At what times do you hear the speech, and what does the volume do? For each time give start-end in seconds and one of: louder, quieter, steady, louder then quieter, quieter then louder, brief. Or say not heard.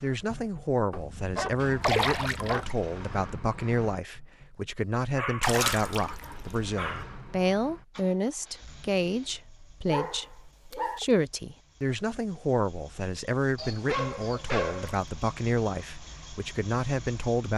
0.0-17.5 steady.